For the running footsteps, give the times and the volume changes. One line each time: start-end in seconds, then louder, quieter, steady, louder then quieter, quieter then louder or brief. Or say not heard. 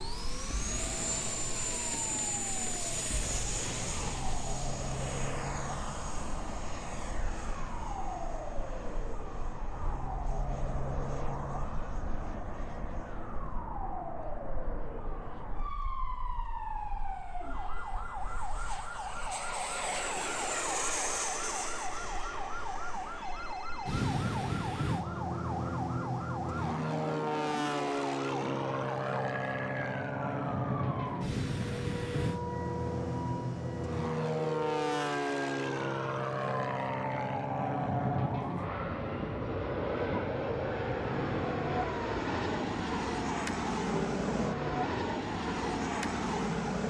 not heard.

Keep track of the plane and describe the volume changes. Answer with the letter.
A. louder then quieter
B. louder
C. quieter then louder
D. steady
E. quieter
C.